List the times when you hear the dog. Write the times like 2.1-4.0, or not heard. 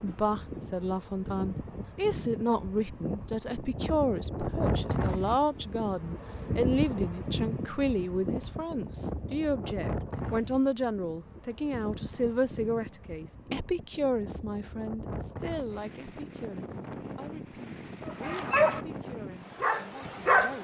18.1-18.8, 19.6-20.5.